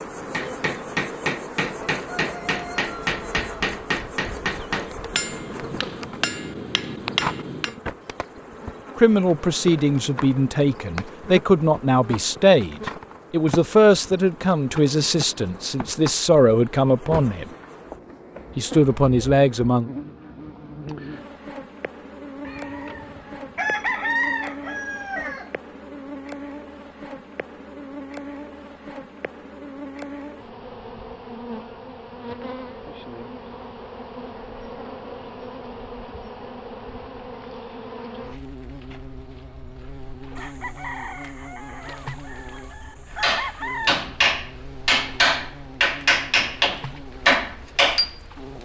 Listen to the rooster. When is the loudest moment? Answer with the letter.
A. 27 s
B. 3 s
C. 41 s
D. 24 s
D.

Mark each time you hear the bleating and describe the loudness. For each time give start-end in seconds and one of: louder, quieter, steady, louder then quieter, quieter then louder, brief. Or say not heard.
not heard.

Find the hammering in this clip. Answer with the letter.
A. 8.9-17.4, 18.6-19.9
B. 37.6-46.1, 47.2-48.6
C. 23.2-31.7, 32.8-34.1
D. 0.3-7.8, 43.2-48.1
D.